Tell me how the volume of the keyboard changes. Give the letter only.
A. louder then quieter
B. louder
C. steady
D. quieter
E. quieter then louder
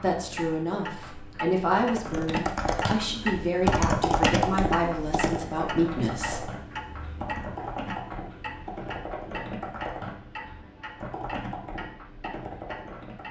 D.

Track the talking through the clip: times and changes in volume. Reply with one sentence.
The talking can be heard from 0.0 to 6.5 s, at a steady volume.